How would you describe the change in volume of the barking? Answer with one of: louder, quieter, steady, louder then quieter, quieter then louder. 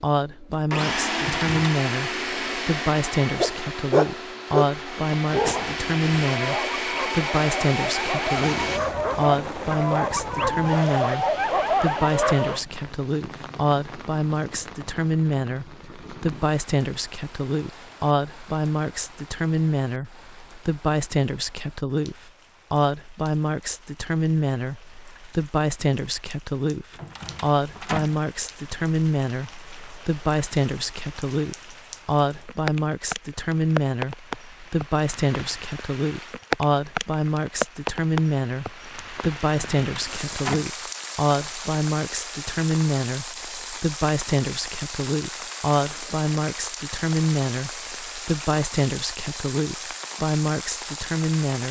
quieter then louder.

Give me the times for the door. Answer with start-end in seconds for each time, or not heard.
1.1-1.8, 26.9-28.2, 39.5-40.6.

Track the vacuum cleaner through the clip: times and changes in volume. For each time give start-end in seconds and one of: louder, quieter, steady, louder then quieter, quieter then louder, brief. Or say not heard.
0.1-8.8 quieter then louder.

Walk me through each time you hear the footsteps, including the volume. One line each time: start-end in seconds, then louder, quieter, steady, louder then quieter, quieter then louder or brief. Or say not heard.
not heard.